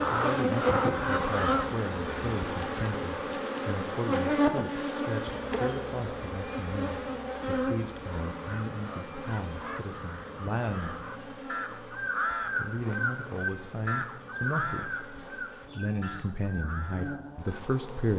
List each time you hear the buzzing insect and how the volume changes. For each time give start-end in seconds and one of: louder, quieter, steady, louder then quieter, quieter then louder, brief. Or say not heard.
0.0-18.1 quieter.